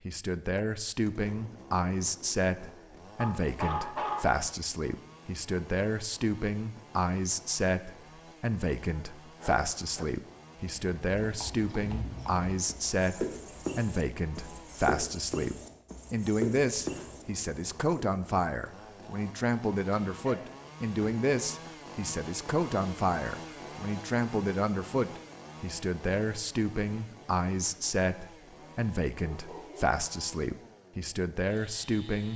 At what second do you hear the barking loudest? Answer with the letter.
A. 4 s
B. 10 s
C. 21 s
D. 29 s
A.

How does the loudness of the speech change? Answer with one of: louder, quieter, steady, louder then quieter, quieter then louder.
steady.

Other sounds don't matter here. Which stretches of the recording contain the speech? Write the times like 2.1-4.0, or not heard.
0.1-32.3.